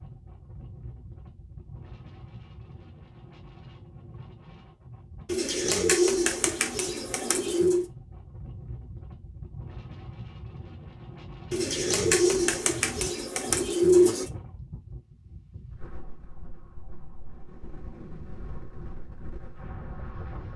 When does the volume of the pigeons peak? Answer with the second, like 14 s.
14 s.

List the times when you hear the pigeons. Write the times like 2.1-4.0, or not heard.
5.2-7.8, 11.5-14.3.